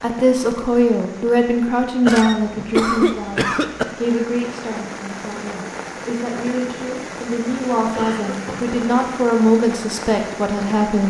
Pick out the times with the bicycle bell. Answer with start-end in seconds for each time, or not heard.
not heard.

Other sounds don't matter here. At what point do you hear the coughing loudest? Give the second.
3 s.